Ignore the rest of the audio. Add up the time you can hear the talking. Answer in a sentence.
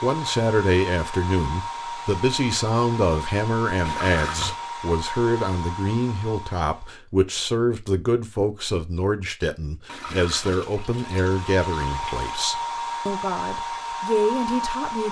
The talking can be heard for 15 seconds in total.